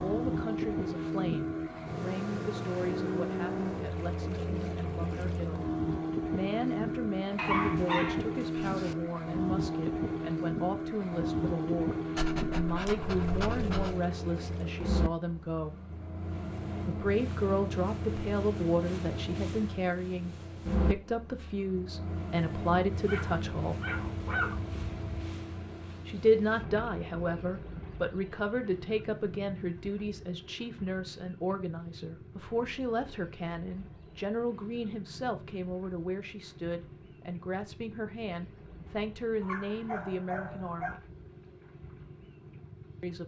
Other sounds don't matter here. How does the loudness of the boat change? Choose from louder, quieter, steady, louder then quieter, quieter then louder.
quieter.